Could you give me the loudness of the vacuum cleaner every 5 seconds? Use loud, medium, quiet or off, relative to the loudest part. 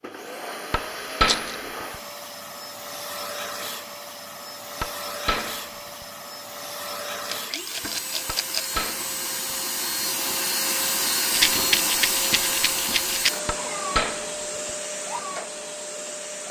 medium, medium, loud, medium.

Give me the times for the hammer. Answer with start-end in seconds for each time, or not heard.
0.7-1.6, 4.8-5.6, 8.2-9.1, 13.4-14.3.